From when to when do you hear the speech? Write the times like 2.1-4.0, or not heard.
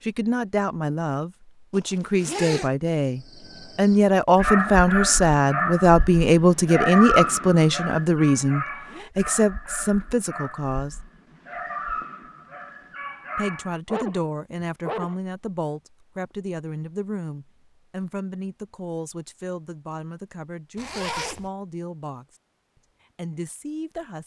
0.0-11.0, 13.3-22.4, 23.1-24.2.